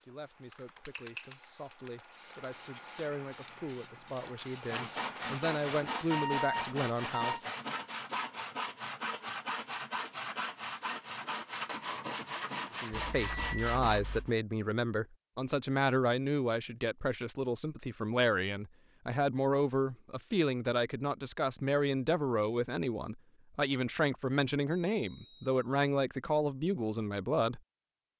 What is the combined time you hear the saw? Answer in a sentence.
You can hear the saw for 10 seconds altogether.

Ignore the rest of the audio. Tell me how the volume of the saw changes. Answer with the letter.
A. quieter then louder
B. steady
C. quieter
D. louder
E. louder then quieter
B.